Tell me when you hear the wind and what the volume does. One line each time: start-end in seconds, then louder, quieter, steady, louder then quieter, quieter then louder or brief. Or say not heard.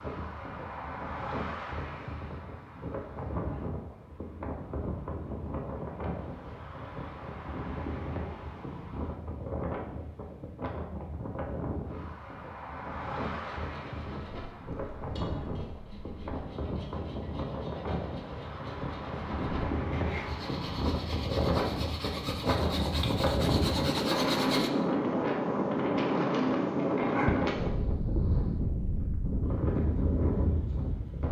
0.0-31.2 louder.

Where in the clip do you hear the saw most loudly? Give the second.
24 s.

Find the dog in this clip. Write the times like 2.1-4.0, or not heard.
27.0-28.5.